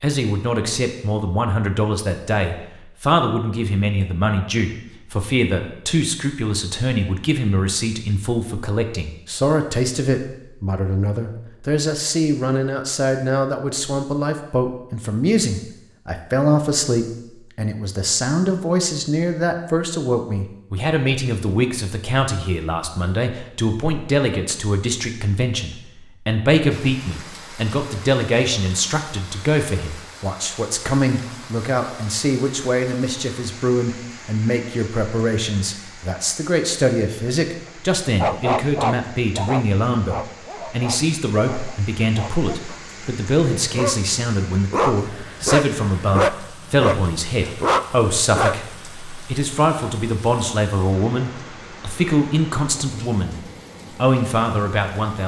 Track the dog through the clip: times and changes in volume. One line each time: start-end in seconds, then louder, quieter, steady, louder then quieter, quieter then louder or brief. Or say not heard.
38.1-48.6 quieter then louder.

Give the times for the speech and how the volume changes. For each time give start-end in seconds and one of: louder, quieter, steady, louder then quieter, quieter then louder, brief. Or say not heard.
0.0-53.4 steady
54.0-55.2 brief.